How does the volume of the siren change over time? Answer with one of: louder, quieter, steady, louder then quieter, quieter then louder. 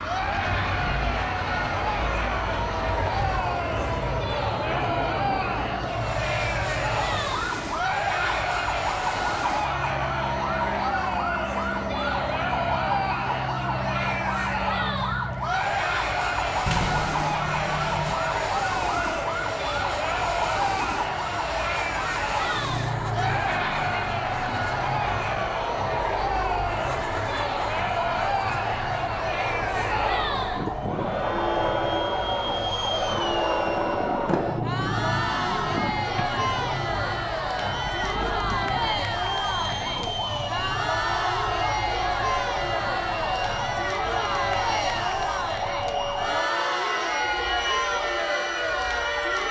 steady.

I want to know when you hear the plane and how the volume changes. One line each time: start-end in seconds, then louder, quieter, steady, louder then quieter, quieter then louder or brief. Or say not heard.
0.0-49.4 steady.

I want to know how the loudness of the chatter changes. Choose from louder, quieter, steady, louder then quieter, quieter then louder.
steady.